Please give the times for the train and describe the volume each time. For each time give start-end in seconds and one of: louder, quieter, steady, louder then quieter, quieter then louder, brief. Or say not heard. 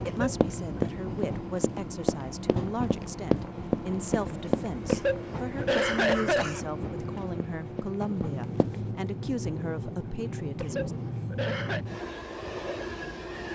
0.0-13.4 steady.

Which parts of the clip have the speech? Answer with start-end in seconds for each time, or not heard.
0.0-10.9.